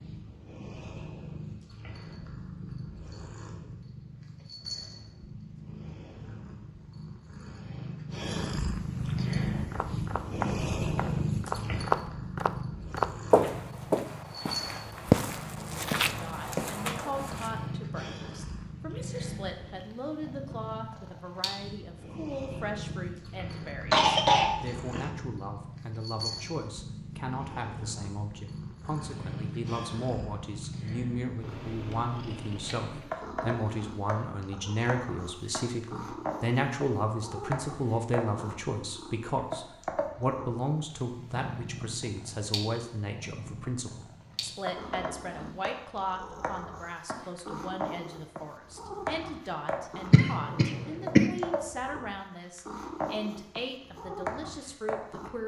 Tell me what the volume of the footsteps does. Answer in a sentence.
The loudness of the footsteps goes up, then down.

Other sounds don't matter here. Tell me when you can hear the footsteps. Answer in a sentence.
The footsteps can be heard from 8.9 to 17.6 s.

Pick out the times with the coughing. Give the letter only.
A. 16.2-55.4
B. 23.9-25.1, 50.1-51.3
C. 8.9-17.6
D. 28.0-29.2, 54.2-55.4
B.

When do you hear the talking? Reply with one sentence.
You can hear the talking from 16.2 to 55.4 s.